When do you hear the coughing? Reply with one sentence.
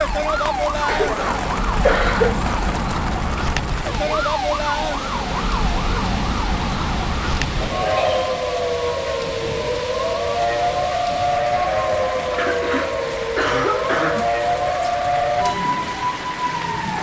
The coughing can be heard from 0.8 to 2.5 s, from 7.6 to 8.2 s and from 12.3 to 14.3 s.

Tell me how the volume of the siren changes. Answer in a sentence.
The volume of the siren stays about the same.